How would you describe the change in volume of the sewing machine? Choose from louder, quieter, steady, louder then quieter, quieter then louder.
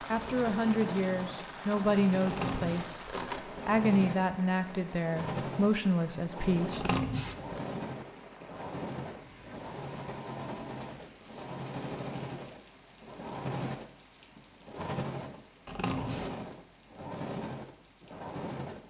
steady.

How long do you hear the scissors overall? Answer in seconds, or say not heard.
3 s.